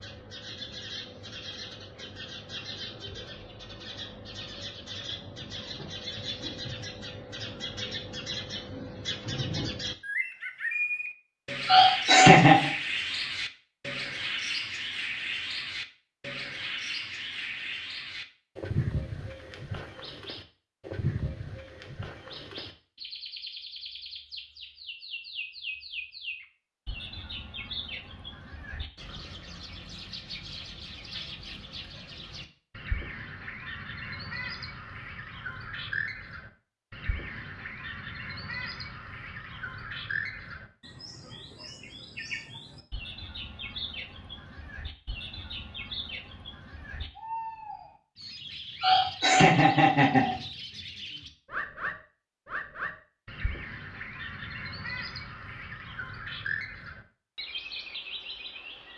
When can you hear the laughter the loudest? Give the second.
12 s.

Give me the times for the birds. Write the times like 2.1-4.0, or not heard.
0.0-58.9.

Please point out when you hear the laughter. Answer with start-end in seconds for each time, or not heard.
11.7-12.7, 48.8-50.4.